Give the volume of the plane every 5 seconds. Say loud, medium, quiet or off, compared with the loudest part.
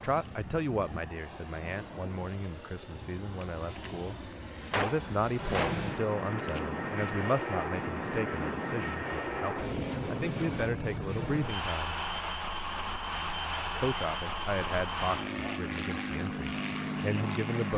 medium, loud, loud, loud.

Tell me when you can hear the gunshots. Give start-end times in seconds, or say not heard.
3.4-3.9, 4.7-6.6.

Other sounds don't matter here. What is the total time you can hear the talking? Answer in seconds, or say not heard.
16 s.